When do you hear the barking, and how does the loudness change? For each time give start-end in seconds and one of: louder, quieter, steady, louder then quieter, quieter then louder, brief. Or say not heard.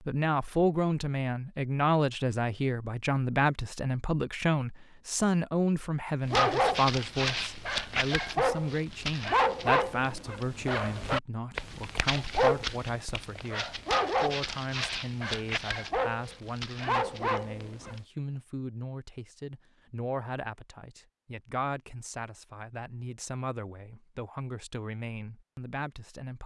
6.3-18.0 steady.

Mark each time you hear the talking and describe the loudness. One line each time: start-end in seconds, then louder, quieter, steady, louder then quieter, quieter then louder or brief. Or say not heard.
0.1-26.4 quieter.